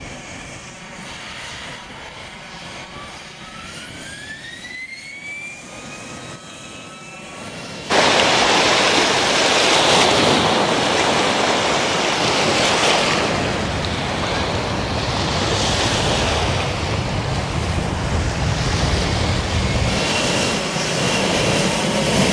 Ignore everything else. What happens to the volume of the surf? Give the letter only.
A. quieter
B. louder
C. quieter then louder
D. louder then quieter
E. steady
A.